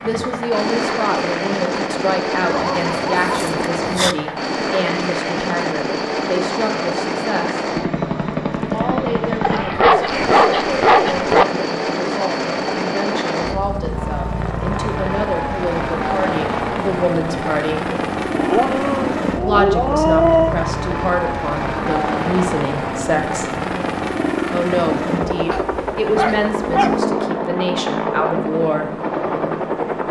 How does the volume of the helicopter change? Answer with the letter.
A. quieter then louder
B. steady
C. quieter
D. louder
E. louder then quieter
B.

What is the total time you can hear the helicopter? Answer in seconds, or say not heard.
30 s.